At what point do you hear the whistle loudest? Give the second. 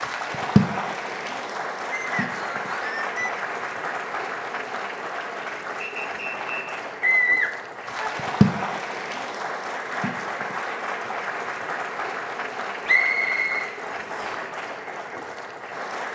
13 s.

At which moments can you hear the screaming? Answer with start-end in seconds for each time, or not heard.
7.0-8.1.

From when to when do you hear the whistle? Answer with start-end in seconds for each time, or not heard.
1.9-3.4, 5.8-6.8, 12.8-14.3.